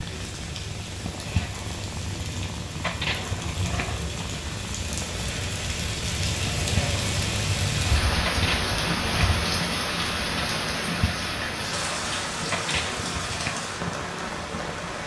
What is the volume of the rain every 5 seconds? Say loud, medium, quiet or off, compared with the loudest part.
medium, loud, loud.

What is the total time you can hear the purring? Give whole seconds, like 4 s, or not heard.
15 s.